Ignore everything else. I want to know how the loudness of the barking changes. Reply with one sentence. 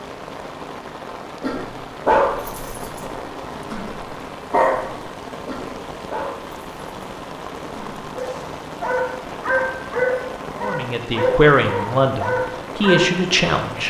The volume of the barking goes down, then up.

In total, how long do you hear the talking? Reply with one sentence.
The talking can be heard for 3 seconds in total.